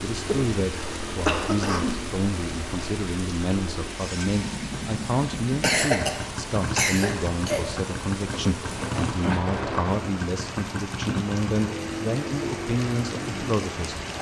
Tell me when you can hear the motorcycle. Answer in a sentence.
You can hear the motorcycle from 0.0 to 14.1 s.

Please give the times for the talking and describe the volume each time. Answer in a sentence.
You can hear the talking from 0.0 to 14.0 s, at a steady volume.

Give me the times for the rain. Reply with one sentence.
You can hear the rain from 0.0 to 14.1 s.